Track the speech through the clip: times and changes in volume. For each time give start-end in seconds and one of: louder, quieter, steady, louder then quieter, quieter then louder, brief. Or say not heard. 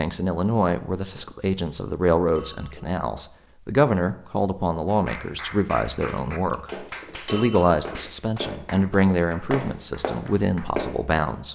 0.0-11.4 steady.